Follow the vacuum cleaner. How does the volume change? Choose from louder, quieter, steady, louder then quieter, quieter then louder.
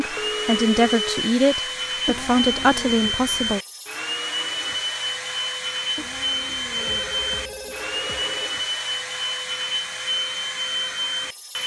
steady.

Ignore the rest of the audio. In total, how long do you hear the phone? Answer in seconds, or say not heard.
3 s.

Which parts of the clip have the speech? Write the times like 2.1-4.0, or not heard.
0.0-3.6.